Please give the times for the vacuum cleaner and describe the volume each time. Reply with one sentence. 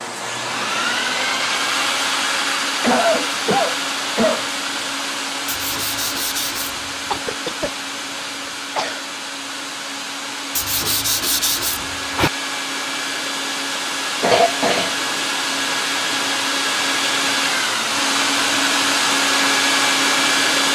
The vacuum cleaner can be heard from 0.0 to 20.6 s, getting quieter then louder.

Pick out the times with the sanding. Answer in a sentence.
The sanding can be heard from 5.5 to 7.2 s and from 10.6 to 12.3 s.